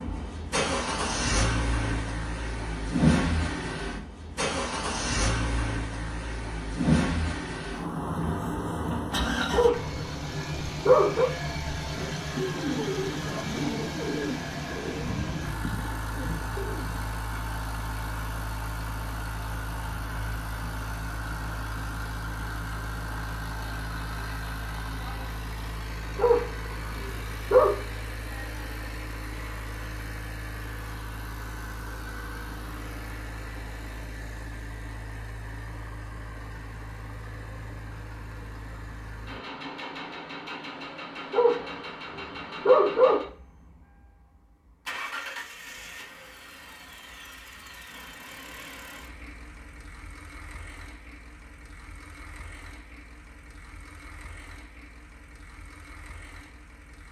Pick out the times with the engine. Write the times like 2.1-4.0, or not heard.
0.0-57.0.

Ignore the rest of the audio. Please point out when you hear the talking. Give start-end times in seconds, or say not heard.
not heard.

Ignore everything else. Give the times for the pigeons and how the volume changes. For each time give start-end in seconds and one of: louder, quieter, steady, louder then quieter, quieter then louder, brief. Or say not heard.
11.9-17.1 quieter.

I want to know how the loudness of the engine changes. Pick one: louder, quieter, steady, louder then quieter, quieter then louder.
quieter.